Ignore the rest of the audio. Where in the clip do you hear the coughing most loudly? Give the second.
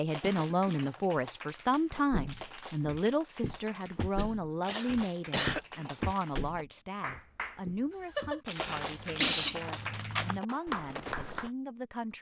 9 s.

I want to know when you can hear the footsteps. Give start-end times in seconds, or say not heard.
1.9-11.5.